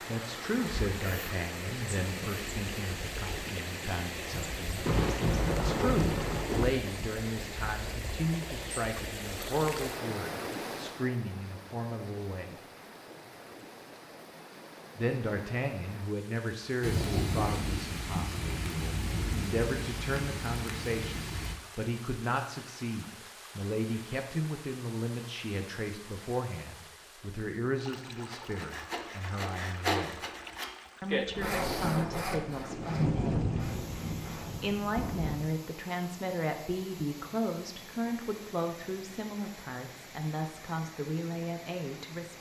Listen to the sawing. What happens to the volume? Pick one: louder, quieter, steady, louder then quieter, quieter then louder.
louder then quieter.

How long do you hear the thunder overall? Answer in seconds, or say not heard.
9 s.